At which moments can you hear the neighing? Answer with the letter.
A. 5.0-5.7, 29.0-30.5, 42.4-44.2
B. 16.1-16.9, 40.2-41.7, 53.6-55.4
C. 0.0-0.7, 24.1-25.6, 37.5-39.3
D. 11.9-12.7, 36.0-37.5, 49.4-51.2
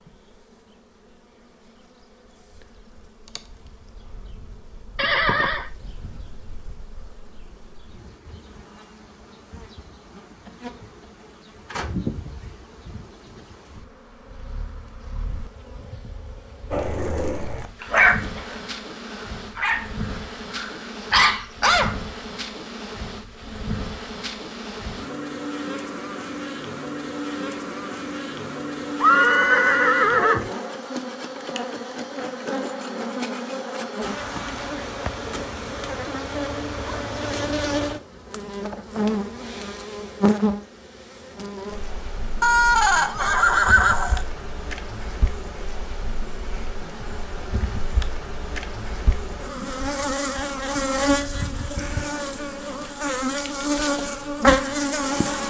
A.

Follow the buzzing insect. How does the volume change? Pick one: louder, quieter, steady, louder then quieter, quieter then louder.
louder.